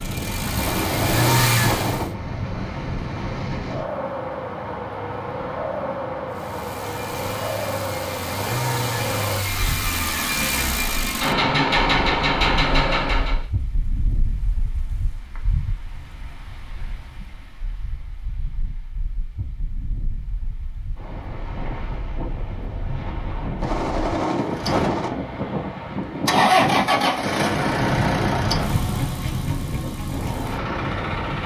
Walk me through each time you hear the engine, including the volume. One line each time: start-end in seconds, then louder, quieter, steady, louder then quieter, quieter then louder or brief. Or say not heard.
0.0-2.1 brief
6.3-13.4 louder
24.4-31.4 louder then quieter.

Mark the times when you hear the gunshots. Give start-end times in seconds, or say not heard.
0.6-2.0, 23.6-25.1.